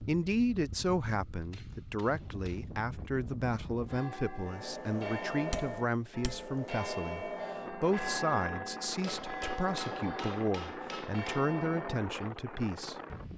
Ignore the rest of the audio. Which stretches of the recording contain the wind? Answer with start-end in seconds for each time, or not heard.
0.0-13.3.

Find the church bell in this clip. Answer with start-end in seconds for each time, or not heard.
3.9-12.2.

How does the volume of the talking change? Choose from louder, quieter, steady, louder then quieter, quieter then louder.
steady.